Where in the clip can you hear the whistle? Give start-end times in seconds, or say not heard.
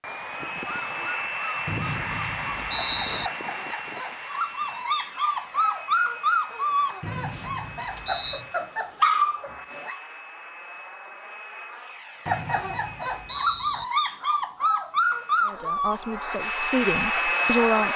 1.6-3.3, 7.0-8.4, 12.2-13.8.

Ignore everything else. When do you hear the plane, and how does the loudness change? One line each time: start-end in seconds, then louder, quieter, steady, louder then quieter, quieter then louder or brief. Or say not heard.
0.0-13.5 quieter
14.9-17.9 brief.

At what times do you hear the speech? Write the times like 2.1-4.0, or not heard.
15.4-17.9.